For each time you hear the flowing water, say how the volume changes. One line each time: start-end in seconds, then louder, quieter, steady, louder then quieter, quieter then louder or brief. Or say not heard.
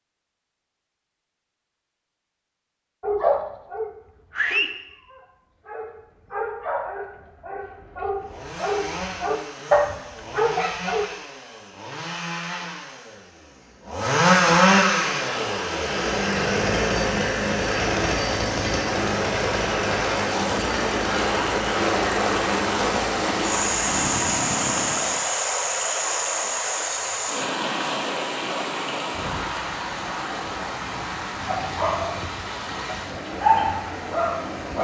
14.9-34.7 louder then quieter.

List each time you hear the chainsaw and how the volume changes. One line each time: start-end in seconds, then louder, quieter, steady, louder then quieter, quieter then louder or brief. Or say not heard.
8.2-25.2 louder then quieter.